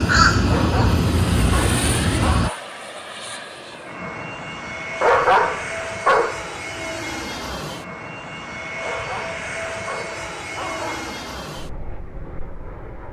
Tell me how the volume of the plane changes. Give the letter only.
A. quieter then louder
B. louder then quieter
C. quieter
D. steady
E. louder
D.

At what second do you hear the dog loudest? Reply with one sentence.
The volume of the dog peaks at 5 seconds.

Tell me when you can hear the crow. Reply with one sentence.
You can hear the crow from 0.0 to 2.5 s.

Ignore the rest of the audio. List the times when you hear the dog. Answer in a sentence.
You can hear the dog from 0.5 to 2.6 s, from 5.0 to 6.5 s and from 8.8 to 11.2 s.